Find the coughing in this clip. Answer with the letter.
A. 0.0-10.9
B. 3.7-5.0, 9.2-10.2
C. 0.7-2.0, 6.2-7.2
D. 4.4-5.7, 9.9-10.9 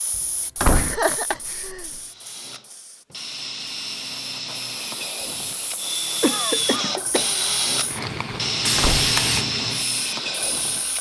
C.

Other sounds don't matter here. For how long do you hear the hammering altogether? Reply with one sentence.
You can't hear the hammering here.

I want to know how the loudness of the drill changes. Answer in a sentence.
The volume of the drill goes up.